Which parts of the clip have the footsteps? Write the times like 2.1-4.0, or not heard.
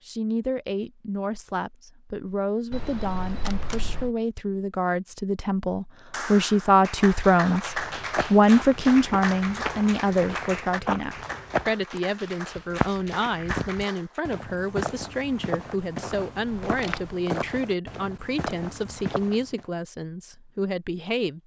7.5-19.6.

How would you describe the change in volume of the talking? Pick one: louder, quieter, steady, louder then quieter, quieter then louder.
louder then quieter.